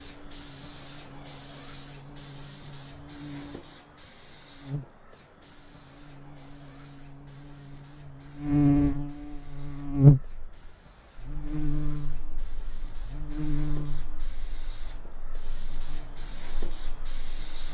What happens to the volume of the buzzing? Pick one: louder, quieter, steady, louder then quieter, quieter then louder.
louder then quieter.